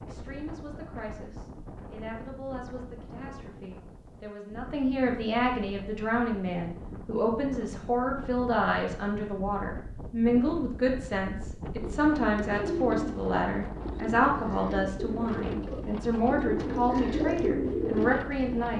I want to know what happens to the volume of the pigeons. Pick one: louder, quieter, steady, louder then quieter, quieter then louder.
quieter then louder.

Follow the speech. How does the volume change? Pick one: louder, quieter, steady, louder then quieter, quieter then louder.
louder.